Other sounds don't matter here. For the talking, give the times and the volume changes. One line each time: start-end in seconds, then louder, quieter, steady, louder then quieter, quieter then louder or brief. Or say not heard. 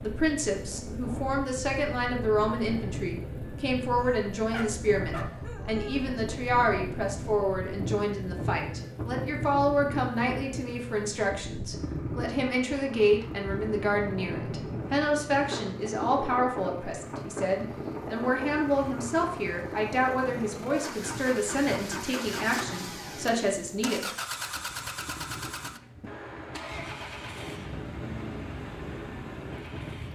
0.0-24.1 steady.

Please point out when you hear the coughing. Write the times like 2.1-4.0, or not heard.
not heard.